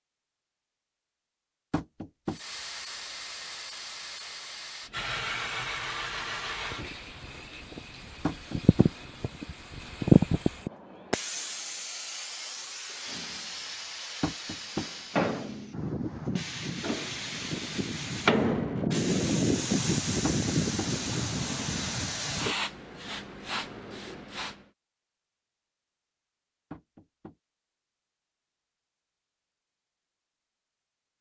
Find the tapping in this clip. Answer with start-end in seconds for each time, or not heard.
1.7-2.4, 8.2-8.9, 14.2-14.9, 20.2-20.9, 26.7-27.4.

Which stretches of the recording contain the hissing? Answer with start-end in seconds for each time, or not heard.
2.2-24.6.